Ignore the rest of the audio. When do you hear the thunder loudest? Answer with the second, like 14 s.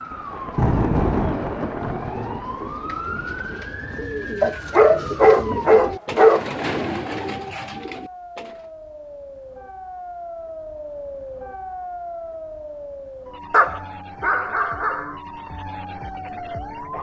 1 s.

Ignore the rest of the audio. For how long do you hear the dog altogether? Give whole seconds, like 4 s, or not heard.
4 s.